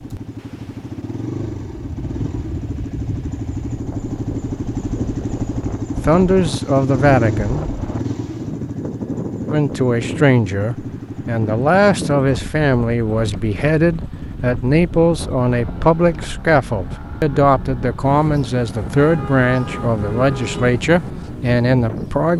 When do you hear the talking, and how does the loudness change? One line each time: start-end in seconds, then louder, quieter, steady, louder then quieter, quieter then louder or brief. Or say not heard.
6.0-7.8 brief
9.5-22.3 steady.